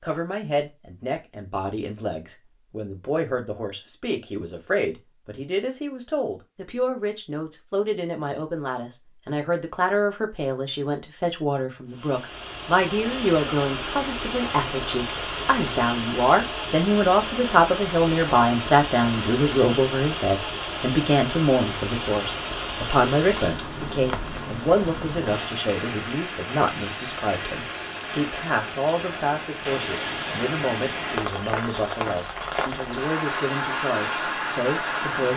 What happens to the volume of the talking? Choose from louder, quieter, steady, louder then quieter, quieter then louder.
louder then quieter.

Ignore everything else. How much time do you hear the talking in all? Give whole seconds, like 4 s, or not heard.
35 s.